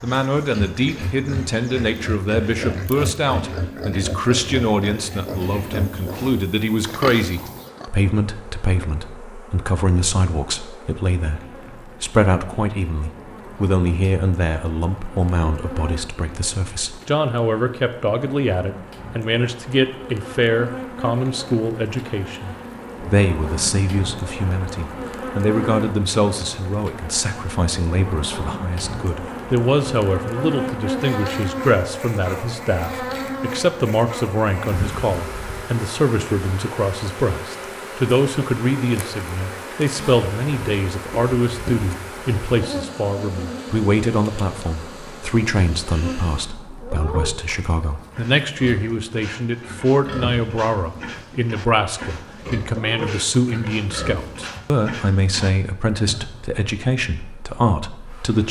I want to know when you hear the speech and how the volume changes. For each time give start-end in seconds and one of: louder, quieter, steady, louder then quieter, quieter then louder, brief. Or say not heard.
0.0-58.4 steady.